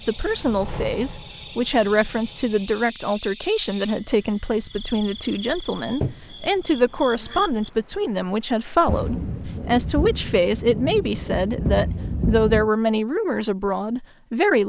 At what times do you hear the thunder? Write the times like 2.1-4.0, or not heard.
8.8-12.7.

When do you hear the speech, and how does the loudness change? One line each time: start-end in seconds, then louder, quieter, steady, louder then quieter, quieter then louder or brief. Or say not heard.
0.0-14.6 steady.